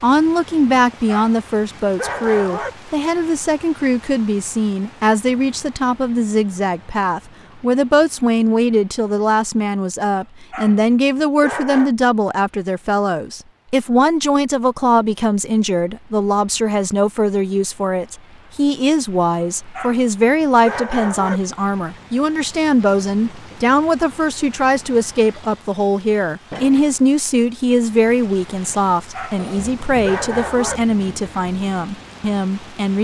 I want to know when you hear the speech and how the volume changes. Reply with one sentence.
The speech can be heard from 0.0 to 32.9 s, at a steady volume.